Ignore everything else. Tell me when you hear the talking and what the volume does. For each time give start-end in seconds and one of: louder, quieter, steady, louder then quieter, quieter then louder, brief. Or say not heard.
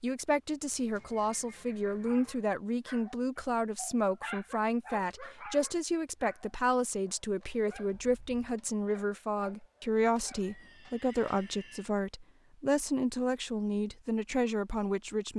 0.0-15.3 steady.